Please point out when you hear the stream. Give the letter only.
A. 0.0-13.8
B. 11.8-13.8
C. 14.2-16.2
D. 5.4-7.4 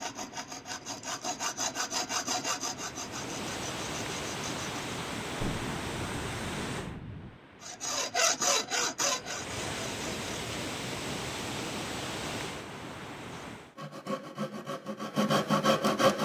A.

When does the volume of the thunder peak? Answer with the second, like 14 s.
6 s.